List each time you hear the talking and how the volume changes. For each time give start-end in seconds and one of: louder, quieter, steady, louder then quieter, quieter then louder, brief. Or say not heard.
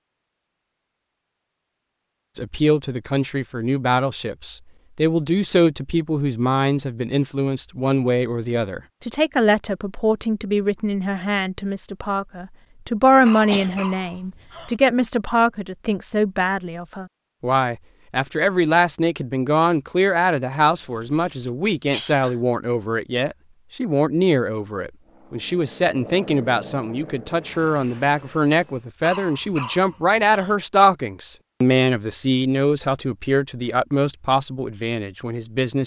2.4-35.8 steady.